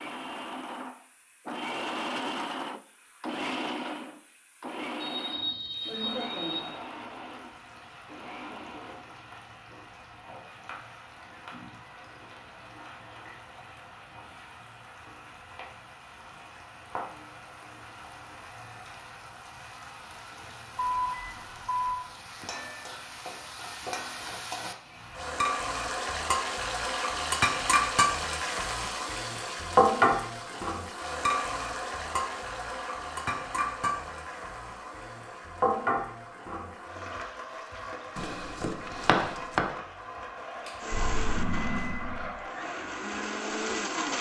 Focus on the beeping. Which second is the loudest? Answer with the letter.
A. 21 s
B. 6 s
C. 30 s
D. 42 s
A.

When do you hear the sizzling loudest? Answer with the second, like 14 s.
30 s.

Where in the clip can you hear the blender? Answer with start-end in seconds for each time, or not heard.
0.0-9.2, 40.6-44.1.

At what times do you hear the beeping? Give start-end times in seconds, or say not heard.
5.0-6.7, 20.8-22.0, 40.9-42.4.